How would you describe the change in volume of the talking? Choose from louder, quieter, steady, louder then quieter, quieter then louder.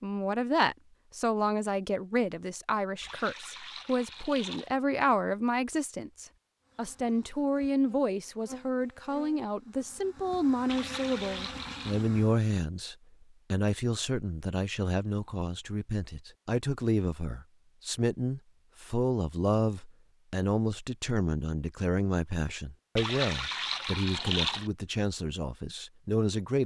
steady.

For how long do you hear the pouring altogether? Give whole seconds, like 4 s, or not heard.
5 s.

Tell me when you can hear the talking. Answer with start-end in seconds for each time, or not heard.
0.0-26.6.